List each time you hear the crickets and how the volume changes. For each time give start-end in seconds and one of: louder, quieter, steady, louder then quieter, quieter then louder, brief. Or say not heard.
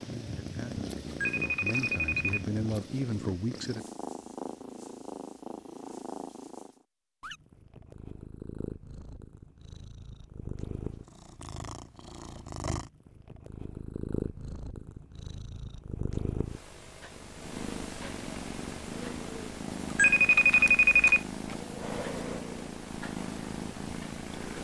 not heard.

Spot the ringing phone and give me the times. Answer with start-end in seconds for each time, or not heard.
1.1-2.8, 19.9-21.6.